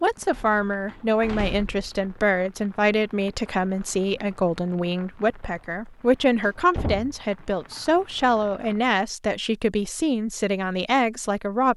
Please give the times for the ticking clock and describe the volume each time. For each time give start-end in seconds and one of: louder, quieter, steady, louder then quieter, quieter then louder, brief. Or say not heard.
not heard.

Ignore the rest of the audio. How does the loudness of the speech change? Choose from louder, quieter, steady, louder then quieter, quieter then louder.
steady.